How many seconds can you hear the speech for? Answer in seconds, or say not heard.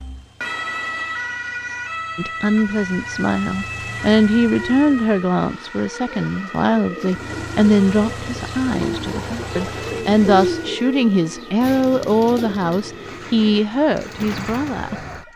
13 s.